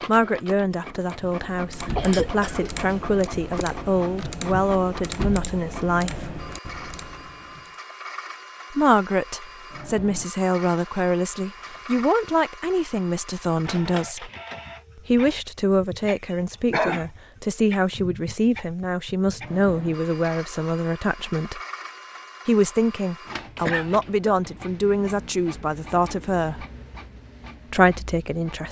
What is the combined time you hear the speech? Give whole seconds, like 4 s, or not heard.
24 s.